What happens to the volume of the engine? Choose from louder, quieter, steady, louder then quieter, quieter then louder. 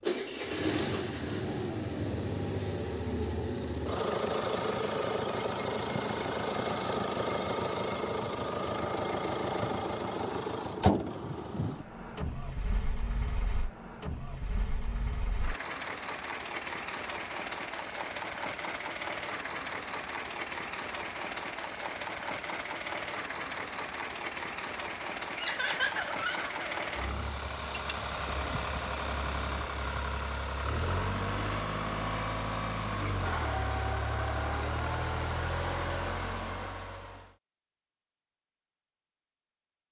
steady.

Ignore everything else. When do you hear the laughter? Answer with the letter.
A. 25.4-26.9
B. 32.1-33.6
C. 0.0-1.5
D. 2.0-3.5
A.